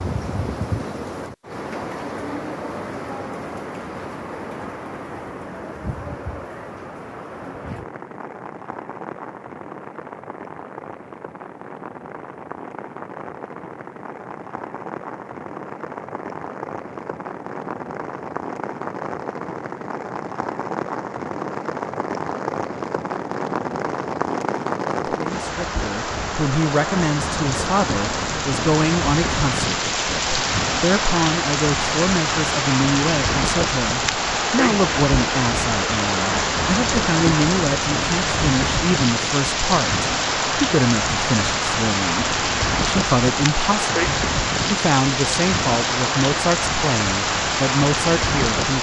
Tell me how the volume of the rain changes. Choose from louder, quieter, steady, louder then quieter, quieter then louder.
louder.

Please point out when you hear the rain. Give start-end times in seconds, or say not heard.
0.0-48.7.